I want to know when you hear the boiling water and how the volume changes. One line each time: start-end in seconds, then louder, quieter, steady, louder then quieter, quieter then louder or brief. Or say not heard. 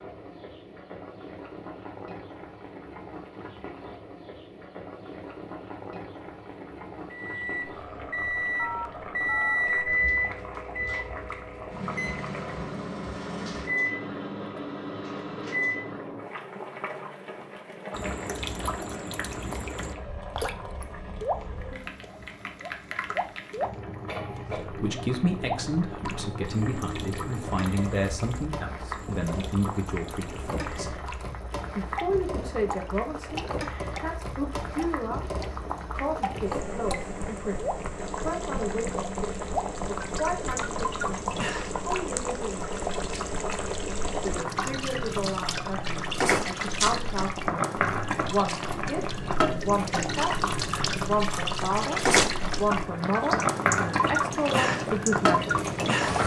0.0-56.2 louder.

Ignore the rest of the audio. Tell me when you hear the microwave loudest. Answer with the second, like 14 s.
10 s.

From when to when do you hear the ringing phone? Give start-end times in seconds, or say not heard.
8.6-9.6.